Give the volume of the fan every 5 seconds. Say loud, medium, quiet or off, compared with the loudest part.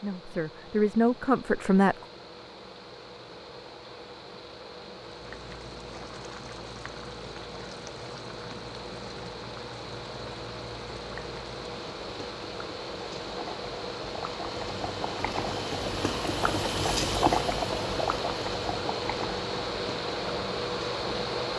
quiet, medium, medium, loud, loud.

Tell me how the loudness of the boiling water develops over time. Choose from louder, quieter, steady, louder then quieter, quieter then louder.
louder.